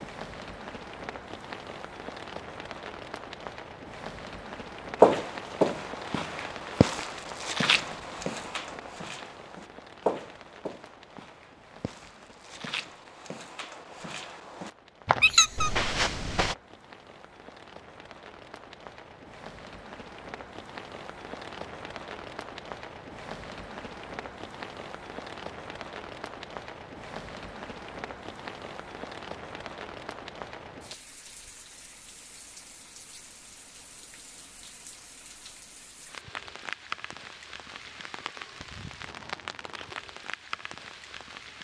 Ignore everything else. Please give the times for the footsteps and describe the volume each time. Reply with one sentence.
You can hear the footsteps from 5.0 to 16.6 s, getting quieter then louder.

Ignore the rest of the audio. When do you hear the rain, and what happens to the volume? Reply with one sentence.
The rain can be heard from 0.0 to 41.5 s, getting quieter then louder.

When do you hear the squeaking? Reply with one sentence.
You can hear the squeaking from 15.2 to 15.7 s.